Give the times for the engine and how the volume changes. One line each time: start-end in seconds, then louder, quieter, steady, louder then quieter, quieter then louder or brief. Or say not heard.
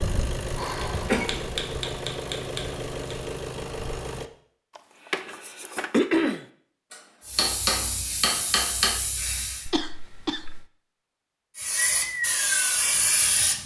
0.0-4.3 steady.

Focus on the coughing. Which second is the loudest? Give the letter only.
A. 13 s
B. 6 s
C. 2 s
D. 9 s
B.